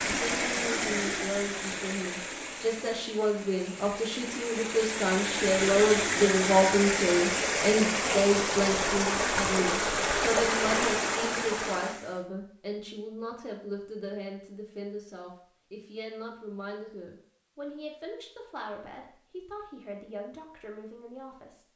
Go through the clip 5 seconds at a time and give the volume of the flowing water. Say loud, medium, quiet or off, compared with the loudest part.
medium, loud, loud, off, off.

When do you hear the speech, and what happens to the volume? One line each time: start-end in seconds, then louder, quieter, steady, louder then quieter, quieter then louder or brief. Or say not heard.
0.0-21.6 louder then quieter.